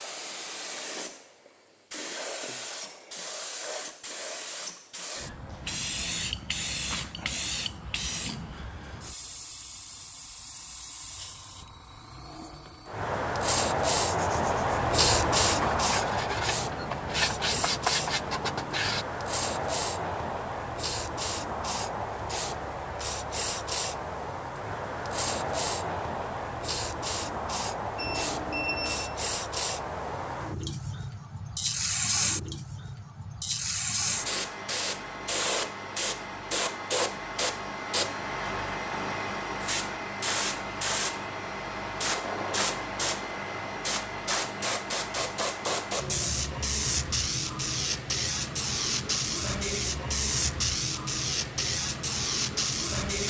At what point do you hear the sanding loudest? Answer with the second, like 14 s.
18 s.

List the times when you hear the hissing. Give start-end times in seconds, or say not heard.
0.0-53.2.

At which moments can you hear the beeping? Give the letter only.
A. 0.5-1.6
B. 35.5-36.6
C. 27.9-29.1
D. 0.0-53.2
C.